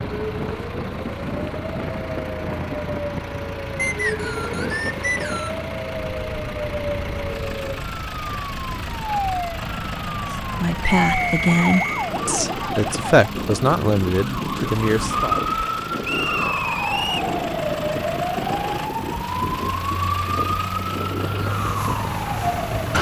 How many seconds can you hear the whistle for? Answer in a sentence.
You can hear the whistle for 4 seconds altogether.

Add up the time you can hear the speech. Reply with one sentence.
The speech can be heard for 5 seconds in total.